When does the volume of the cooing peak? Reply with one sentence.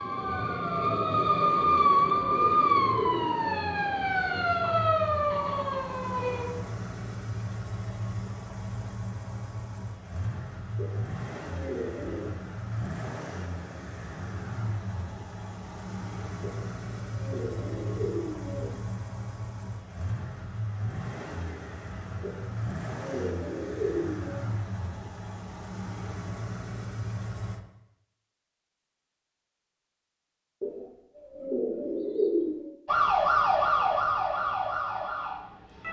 The volume of the cooing peaks at 32 seconds.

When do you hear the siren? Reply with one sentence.
The siren can be heard from 0.0 to 6.5 s and from 32.9 to 35.8 s.